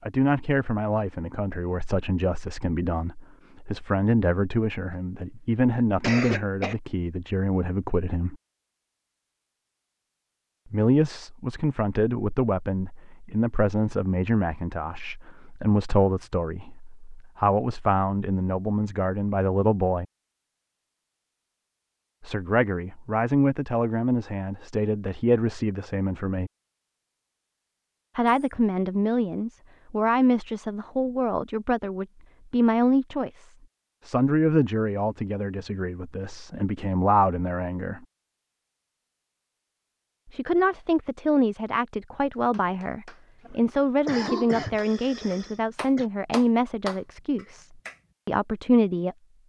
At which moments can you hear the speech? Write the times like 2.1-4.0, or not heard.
0.0-8.3, 10.7-20.1, 22.2-26.5, 28.1-38.0, 40.3-49.4.